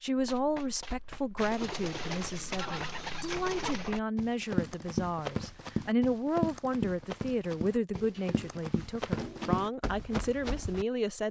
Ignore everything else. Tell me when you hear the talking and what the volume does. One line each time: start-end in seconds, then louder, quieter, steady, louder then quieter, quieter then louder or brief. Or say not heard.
0.0-11.2 steady.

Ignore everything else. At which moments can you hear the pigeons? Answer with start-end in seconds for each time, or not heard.
1.4-4.0, 8.0-9.8.